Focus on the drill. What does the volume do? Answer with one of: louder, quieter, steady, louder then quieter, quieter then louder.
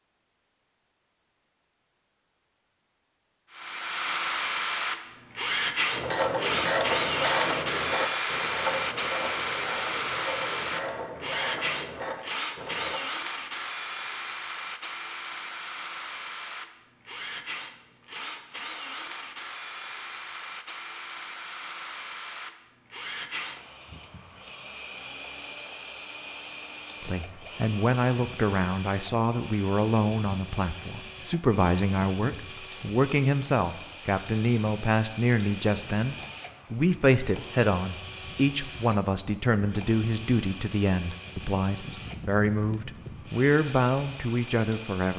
quieter.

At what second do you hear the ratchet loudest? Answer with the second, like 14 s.
7 s.